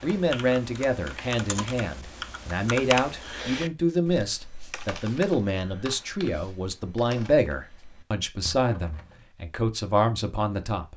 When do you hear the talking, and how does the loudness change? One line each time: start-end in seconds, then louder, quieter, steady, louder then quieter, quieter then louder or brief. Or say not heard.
0.0-10.9 steady.